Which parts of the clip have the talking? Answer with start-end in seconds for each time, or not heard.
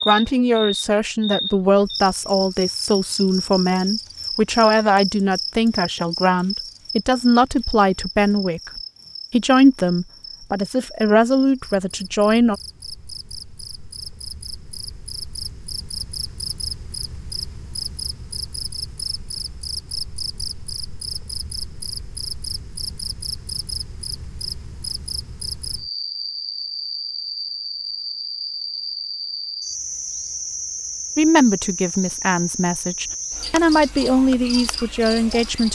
0.1-12.6, 31.1-35.7.